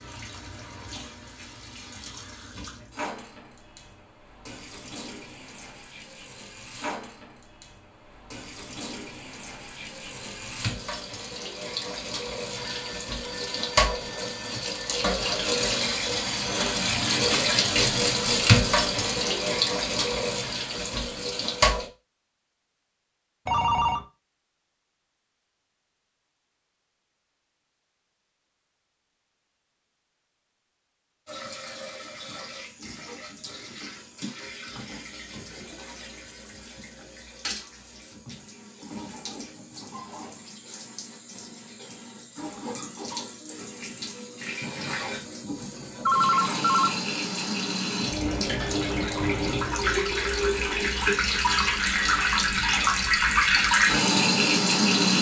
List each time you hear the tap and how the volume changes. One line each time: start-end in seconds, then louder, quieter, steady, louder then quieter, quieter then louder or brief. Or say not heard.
0.0-21.9 louder
31.2-55.1 louder.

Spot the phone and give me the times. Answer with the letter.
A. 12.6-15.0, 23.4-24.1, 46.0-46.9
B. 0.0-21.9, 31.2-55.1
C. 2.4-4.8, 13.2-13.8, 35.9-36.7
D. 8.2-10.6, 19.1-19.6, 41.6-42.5
A.